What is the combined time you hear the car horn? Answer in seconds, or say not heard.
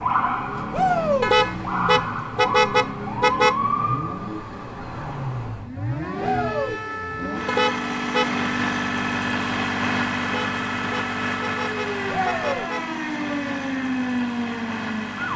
6 s.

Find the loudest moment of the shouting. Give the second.
1 s.